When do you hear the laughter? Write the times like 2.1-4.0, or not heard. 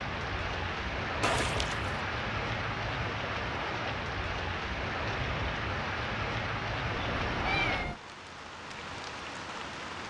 not heard.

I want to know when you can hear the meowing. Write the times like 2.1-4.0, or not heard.
1.2-1.9, 7.0-8.0.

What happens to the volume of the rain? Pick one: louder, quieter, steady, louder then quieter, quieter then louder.
quieter.